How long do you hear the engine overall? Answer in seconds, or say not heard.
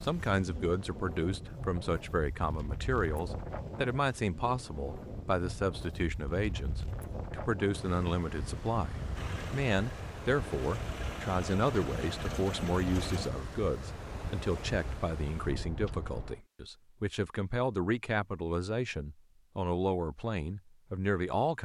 4 s.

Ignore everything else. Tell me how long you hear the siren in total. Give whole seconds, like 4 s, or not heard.
not heard.